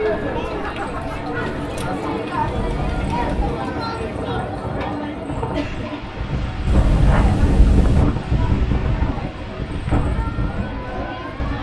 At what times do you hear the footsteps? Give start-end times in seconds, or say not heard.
not heard.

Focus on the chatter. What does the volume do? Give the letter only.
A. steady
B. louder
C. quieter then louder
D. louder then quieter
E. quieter
E.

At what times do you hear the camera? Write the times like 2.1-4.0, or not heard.
2.5-3.6, 6.7-8.1.